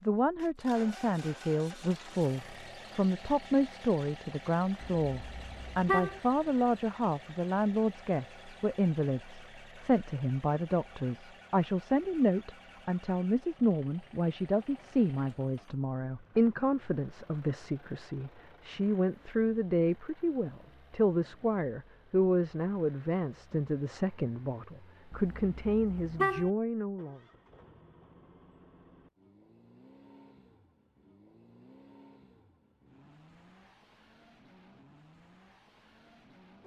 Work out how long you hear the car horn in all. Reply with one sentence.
You can hear the car horn for 3 seconds altogether.